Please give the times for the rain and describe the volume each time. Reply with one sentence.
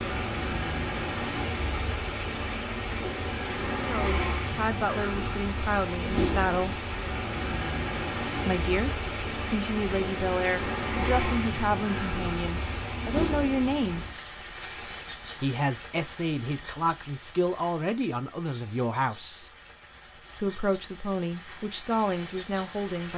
You can hear the rain from 0.0 to 23.1 s, getting quieter.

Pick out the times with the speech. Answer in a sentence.
You can hear the speech from 3.7 to 6.8 s, from 8.4 to 14.1 s, from 15.4 to 19.5 s and from 20.4 to 23.1 s.